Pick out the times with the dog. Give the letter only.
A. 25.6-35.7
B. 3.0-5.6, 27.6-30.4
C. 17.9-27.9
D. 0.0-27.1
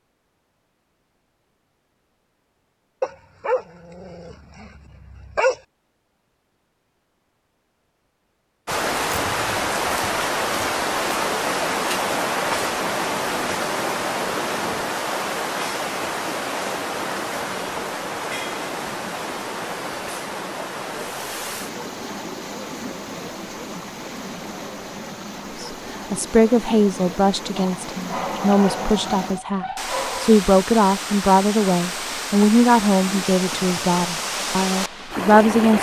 B.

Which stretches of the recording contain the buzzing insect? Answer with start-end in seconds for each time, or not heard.
not heard.